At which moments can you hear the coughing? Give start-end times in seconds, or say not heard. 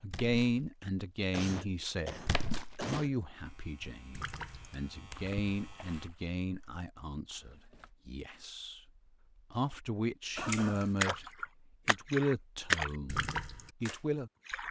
1.3-3.1, 10.3-10.9.